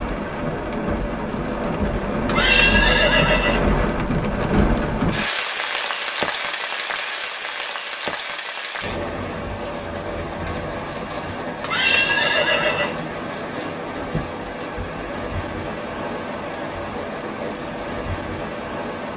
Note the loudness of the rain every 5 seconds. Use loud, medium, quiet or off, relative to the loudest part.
loud, loud, medium, medium.